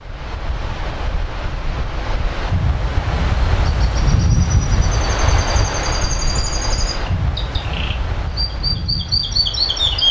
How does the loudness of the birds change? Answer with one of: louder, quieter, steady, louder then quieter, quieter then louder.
louder.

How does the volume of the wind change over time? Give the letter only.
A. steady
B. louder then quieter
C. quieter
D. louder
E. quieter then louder
B.